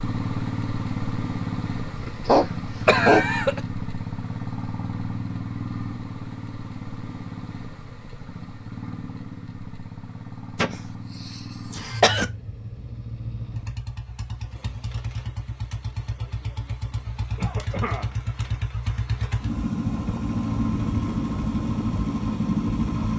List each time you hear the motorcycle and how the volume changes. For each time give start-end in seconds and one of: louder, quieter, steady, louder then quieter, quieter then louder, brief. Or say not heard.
0.0-23.1 quieter then louder.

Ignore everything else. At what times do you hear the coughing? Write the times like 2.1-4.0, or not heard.
2.0-3.6, 10.6-12.2, 17.4-18.1.